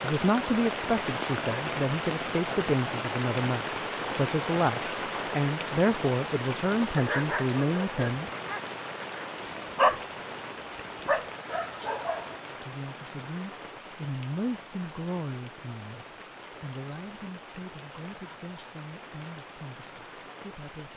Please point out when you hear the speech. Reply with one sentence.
The speech can be heard from 0.0 to 8.3 s and from 12.4 to 20.9 s.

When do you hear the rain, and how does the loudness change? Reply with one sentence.
The rain can be heard from 0.0 to 20.9 s, getting quieter.